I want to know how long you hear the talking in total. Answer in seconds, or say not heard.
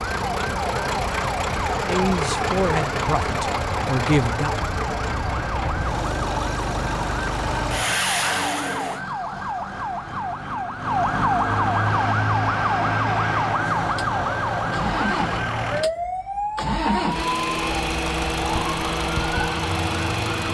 3 s.